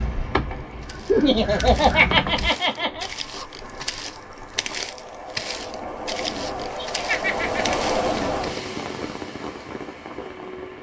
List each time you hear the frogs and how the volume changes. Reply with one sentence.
You can't hear the frogs here.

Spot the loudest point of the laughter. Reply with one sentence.
The loudest moment of the laughter is at 2 seconds.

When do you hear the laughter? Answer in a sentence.
The laughter can be heard from 1.1 to 3.0 s and from 6.8 to 7.8 s.